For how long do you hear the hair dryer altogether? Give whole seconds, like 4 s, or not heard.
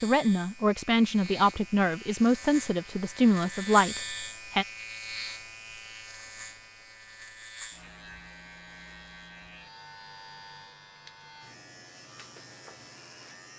not heard.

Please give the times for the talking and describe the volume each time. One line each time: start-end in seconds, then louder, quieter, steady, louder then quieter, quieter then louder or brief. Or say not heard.
0.0-4.7 steady.